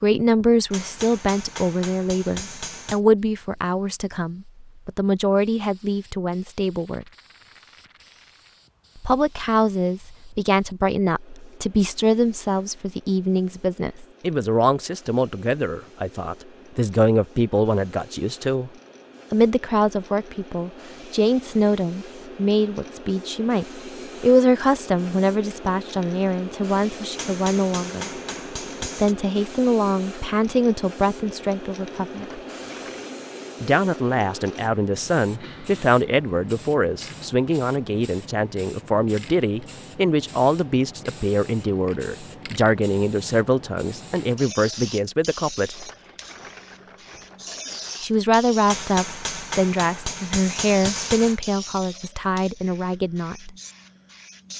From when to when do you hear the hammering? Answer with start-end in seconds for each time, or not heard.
0.7-3.0, 27.1-29.1, 48.6-51.4.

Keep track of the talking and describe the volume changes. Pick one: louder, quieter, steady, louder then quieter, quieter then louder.
steady.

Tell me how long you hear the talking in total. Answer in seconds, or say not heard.
47 s.